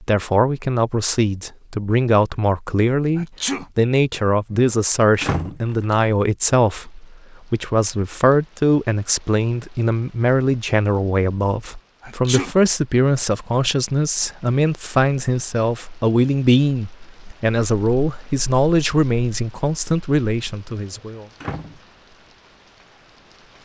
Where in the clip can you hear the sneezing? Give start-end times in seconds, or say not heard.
3.1-3.6, 12.0-12.6.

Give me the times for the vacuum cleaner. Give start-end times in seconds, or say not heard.
not heard.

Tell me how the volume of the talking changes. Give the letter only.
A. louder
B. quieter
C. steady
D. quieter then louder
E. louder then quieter
C.